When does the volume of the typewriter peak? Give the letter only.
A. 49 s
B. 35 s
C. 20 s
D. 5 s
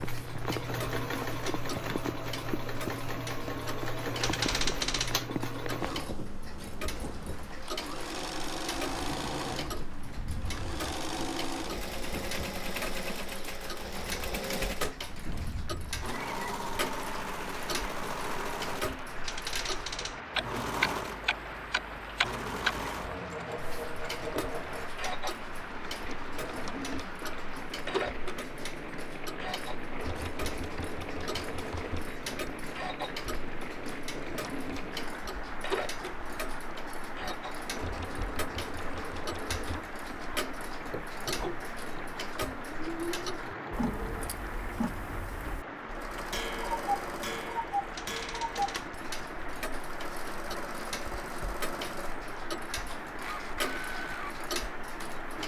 D.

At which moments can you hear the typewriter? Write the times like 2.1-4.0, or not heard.
4.2-5.2, 19.2-20.2, 47.9-48.9.